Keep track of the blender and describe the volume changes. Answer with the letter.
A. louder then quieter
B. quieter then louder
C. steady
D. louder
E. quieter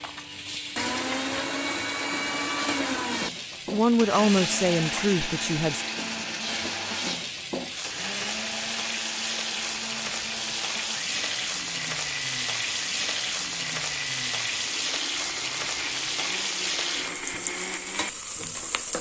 E.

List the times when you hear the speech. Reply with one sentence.
You can hear the speech from 3.7 to 5.8 s.